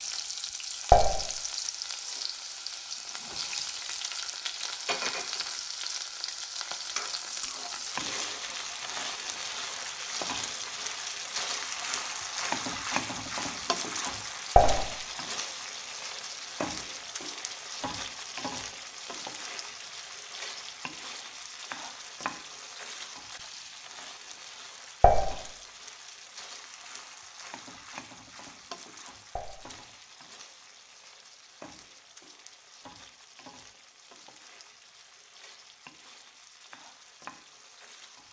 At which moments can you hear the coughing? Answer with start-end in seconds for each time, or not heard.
not heard.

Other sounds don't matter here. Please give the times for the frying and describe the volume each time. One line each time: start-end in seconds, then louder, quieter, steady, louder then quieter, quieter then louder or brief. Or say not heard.
0.0-38.2 quieter.